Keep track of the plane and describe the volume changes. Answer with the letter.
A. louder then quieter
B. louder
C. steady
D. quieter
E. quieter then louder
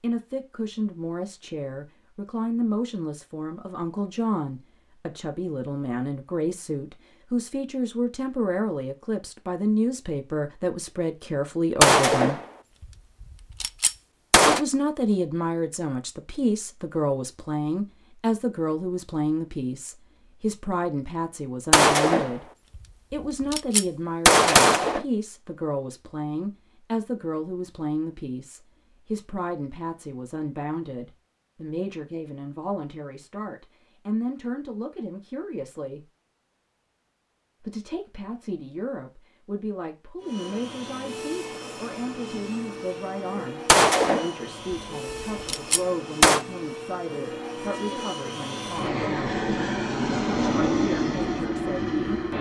B.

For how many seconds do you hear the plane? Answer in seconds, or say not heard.
12 s.